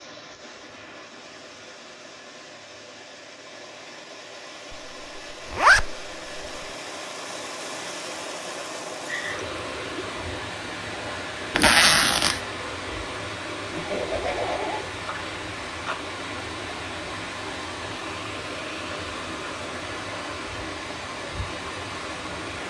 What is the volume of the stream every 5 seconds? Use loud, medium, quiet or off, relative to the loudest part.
medium, loud, loud, loud, loud.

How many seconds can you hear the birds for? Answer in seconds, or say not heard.
not heard.